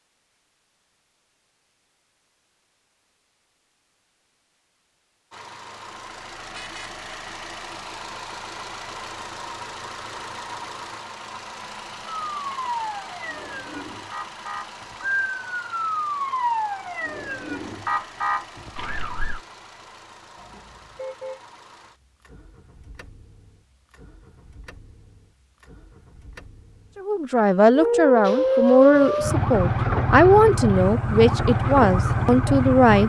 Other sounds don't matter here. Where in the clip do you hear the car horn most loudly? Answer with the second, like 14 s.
21 s.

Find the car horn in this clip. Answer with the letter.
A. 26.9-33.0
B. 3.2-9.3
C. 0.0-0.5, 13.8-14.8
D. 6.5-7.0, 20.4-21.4
D.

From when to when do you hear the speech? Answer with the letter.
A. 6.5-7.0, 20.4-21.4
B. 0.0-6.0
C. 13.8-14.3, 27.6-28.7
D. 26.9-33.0
D.